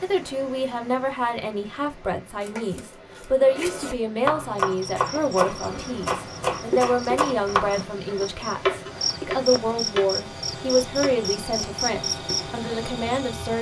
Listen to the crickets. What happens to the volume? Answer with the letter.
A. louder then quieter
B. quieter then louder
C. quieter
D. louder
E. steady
D.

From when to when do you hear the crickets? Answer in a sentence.
The crickets can be heard from 4.5 to 13.5 s.